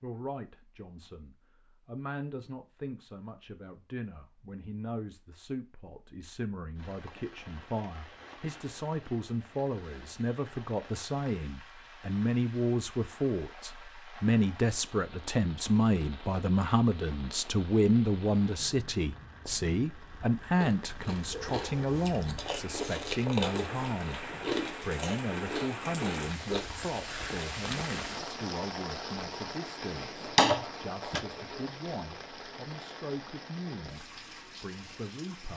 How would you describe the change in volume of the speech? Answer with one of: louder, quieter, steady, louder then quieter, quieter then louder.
louder then quieter.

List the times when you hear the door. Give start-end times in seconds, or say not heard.
30.2-31.2.